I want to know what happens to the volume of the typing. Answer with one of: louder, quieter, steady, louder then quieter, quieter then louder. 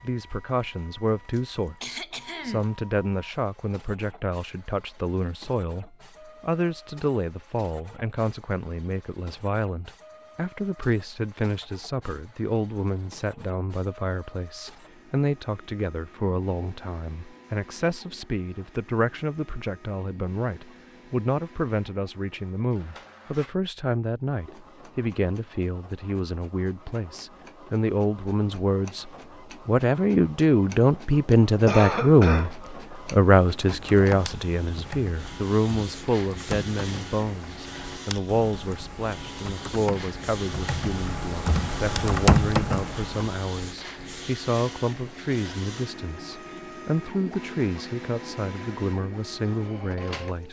louder.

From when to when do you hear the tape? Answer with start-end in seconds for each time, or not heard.
not heard.